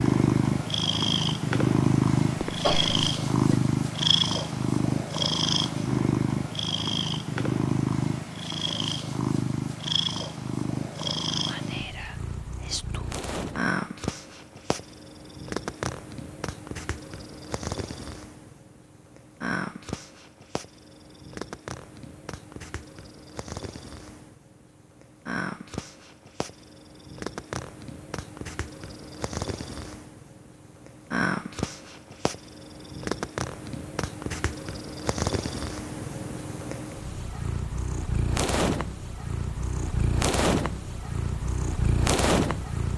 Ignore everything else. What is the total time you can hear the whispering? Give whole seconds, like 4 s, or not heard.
2 s.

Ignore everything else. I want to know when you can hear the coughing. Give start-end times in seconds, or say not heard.
2.4-3.5.